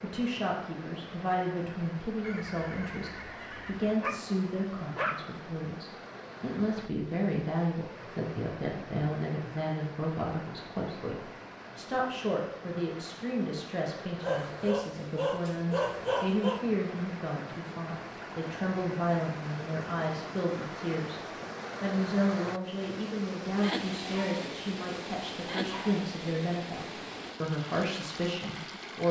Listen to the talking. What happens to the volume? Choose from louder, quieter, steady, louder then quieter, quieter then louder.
steady.